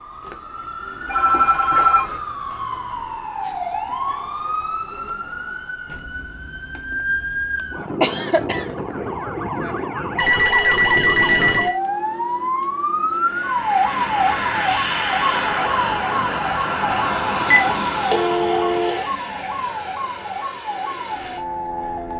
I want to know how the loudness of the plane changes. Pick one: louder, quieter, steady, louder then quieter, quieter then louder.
quieter.